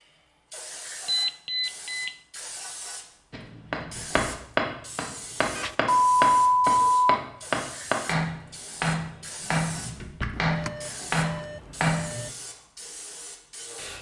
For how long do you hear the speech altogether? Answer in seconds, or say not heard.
not heard.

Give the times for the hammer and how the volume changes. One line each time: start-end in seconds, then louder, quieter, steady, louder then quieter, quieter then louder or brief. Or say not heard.
3.3-12.2 steady.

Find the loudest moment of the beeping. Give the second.
6 s.